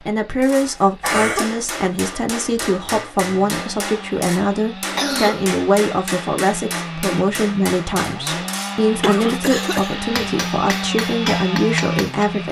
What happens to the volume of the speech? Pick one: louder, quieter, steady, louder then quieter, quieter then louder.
steady.